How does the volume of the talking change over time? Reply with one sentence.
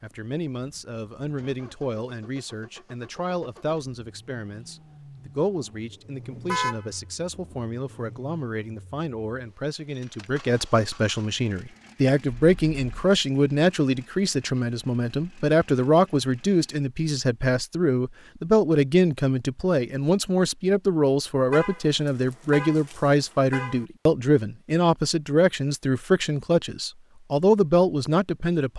The loudness of the talking goes up.